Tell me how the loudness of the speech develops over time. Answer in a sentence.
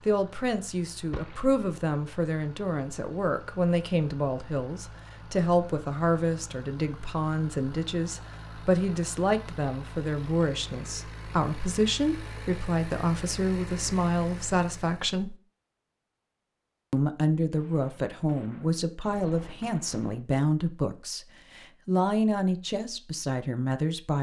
The loudness of the speech stays about the same.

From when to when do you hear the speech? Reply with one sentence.
The speech can be heard from 0.1 to 15.3 s and from 16.9 to 24.1 s.